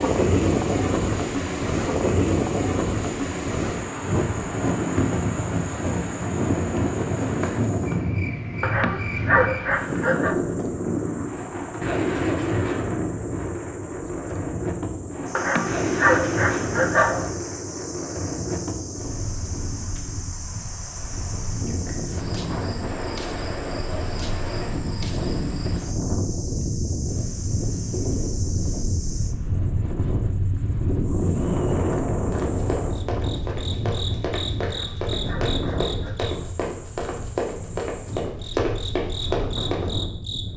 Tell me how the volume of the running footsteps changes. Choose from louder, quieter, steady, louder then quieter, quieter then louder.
louder.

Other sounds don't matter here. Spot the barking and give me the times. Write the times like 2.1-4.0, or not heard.
8.6-10.3, 15.3-17.3, 34.6-36.3.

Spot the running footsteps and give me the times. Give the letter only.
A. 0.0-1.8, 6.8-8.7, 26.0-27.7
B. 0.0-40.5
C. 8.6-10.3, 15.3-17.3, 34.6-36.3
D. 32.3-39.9
D.